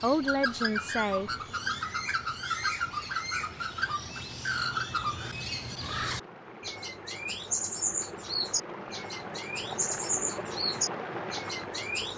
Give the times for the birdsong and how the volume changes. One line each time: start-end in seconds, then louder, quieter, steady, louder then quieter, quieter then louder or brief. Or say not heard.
0.0-12.1 steady.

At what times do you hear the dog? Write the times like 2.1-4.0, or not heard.
not heard.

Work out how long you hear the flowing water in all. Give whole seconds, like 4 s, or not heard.
12 s.